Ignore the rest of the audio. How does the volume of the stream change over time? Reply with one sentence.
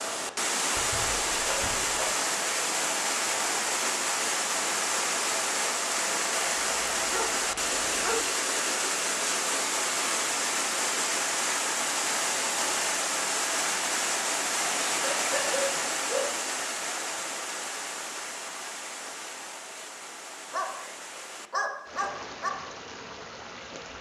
The volume of the stream goes down.